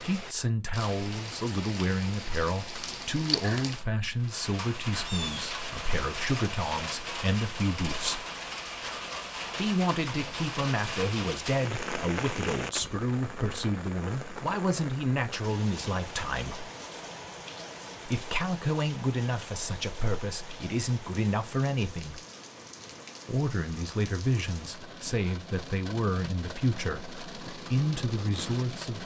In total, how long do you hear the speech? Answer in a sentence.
You can hear the speech for 25 seconds altogether.